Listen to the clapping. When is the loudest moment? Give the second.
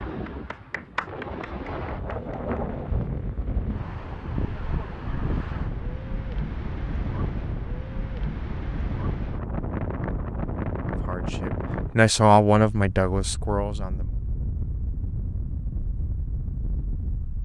1 s.